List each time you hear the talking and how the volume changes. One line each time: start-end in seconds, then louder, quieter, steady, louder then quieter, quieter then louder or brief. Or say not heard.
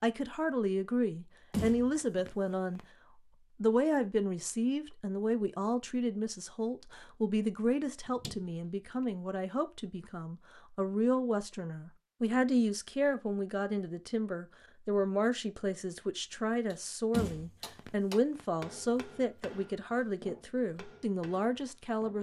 0.0-2.8 brief
3.6-22.1 steady.